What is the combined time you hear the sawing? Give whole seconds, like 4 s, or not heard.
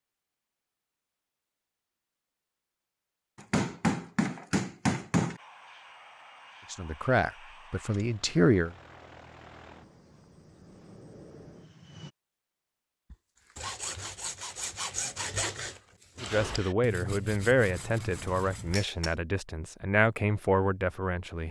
6 s.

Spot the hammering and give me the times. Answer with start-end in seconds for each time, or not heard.
3.4-5.4, 17.6-19.1.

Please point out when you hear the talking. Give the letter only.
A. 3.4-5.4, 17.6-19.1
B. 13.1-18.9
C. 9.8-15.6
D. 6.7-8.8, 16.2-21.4
D.